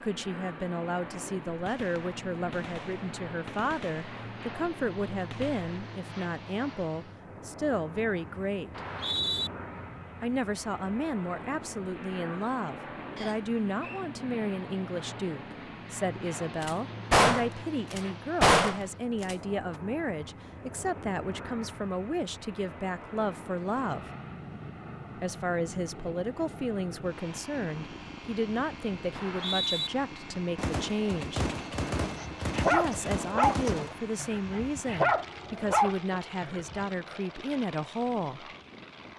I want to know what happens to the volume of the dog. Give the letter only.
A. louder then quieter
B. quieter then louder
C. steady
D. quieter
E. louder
B.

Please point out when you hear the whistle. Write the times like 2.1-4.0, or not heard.
8.7-9.5, 13.2-14.1, 29.1-29.9.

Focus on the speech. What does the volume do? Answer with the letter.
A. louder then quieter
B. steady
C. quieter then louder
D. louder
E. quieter
B.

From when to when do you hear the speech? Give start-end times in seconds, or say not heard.
0.0-8.8, 10.2-24.1, 25.1-31.4, 32.7-38.5.